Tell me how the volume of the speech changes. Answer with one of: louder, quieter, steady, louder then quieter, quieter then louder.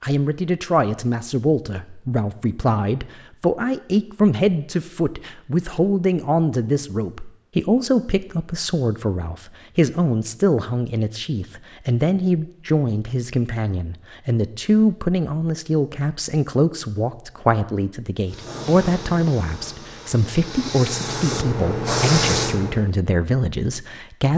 steady.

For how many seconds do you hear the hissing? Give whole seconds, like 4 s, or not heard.
5 s.